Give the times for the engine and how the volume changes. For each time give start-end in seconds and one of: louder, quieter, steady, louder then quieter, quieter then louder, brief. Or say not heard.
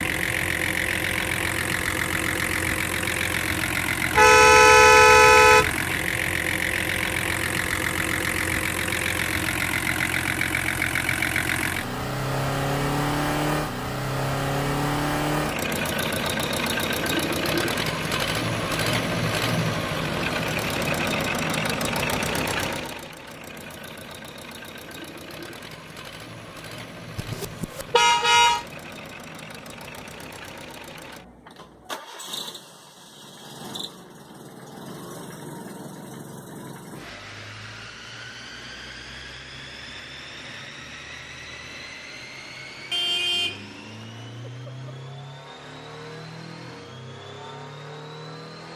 0.0-48.7 quieter.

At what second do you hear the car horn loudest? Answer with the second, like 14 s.
5 s.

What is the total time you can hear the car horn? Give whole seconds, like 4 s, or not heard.
4 s.